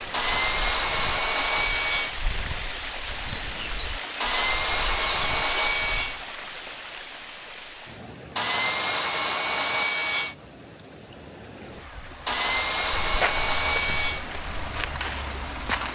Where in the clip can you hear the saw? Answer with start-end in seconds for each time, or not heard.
0.1-2.1, 4.2-6.2, 8.3-10.3, 12.2-14.2.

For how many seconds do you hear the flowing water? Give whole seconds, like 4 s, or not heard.
16 s.